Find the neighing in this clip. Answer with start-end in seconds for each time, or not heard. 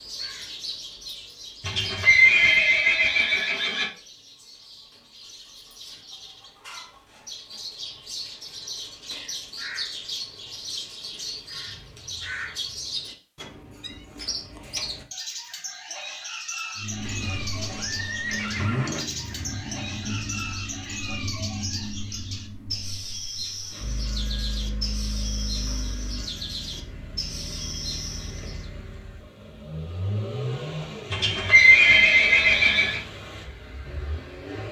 1.6-3.9, 17.0-19.0, 31.1-33.0.